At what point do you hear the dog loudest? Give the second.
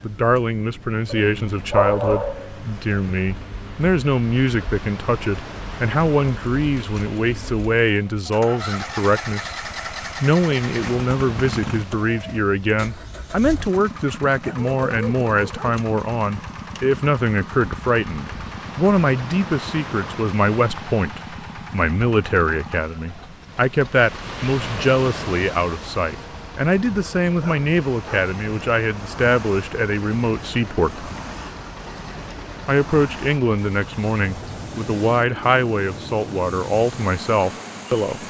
2 s.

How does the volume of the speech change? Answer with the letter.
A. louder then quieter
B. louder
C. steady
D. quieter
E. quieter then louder
C.